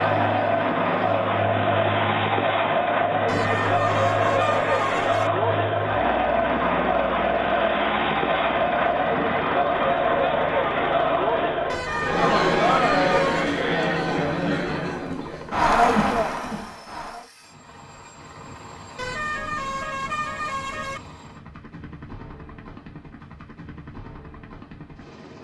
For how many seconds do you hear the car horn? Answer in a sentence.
The car horn can be heard for 6 seconds in total.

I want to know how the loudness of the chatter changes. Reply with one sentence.
The volume of the chatter stays about the same.